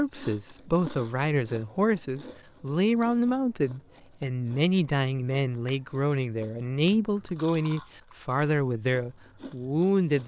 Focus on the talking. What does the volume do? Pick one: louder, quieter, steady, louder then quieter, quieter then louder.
steady.